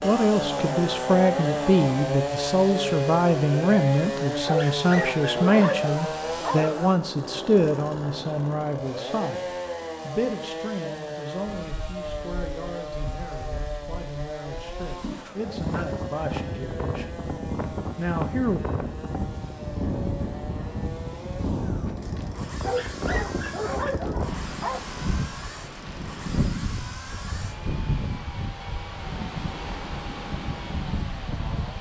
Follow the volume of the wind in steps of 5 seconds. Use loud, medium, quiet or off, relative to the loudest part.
off, off, quiet, loud, loud, loud, loud.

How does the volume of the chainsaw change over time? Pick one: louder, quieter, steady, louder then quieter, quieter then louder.
quieter.